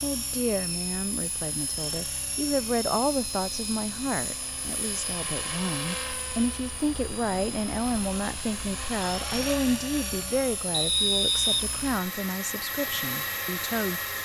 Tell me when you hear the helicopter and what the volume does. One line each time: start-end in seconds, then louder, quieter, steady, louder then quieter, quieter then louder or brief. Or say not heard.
0.0-14.1 steady.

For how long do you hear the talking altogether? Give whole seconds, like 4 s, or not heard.
14 s.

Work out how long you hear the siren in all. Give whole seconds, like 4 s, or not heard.
not heard.